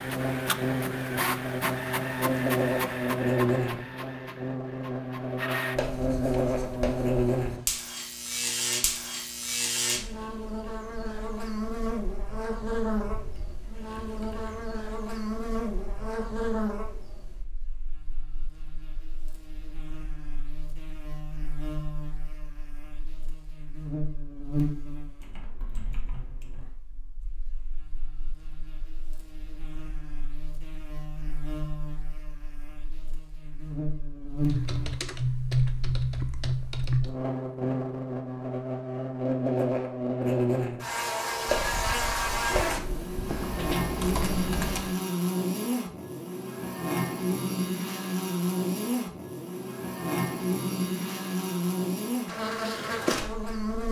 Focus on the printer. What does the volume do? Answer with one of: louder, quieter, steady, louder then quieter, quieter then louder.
quieter.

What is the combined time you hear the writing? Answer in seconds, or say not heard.
4 s.